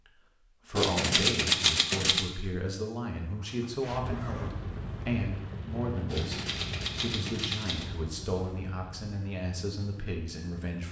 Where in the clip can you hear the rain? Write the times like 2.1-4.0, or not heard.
3.8-10.8.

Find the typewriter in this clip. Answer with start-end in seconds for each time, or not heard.
0.8-2.3, 6.0-8.0.